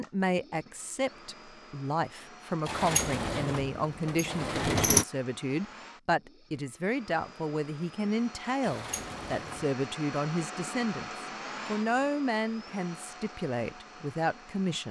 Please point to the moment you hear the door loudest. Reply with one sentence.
The loudest moment of the door is at 5 seconds.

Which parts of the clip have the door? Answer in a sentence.
The door can be heard from 2.6 to 5.0 s and from 8.6 to 9.7 s.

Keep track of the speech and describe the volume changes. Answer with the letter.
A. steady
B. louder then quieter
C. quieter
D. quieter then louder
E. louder
A.